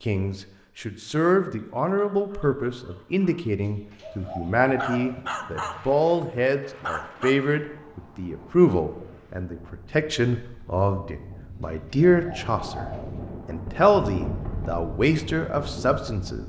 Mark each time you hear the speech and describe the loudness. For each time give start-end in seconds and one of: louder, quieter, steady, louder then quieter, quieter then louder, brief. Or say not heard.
0.0-12.8 steady
13.4-16.4 brief.